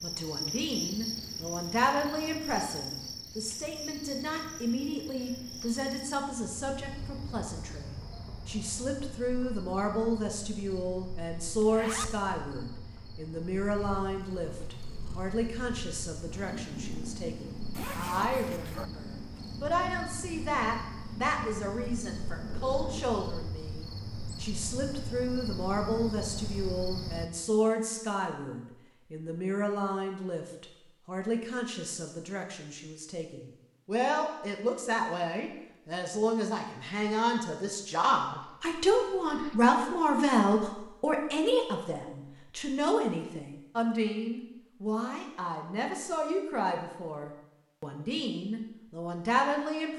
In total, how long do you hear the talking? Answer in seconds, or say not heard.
50 s.